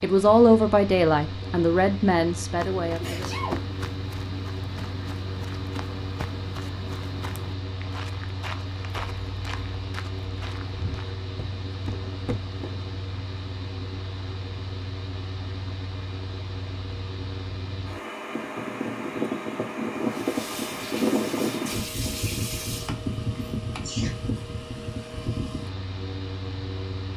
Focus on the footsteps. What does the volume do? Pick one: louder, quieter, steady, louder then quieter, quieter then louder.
steady.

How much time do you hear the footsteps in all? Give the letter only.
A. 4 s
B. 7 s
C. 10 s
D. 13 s
C.